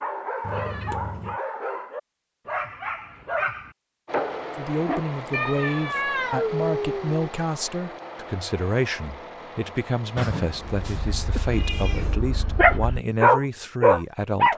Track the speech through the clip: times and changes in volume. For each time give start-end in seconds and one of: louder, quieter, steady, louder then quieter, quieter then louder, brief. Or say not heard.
4.5-14.5 steady.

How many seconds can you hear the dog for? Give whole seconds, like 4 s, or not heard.
9 s.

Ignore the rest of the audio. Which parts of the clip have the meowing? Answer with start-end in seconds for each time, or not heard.
0.4-1.4, 5.3-7.3, 10.2-12.2.